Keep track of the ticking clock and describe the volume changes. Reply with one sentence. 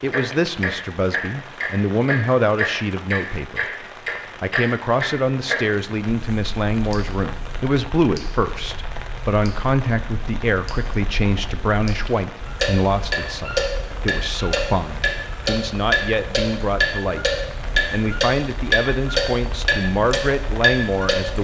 The volume of the ticking clock goes down, then up.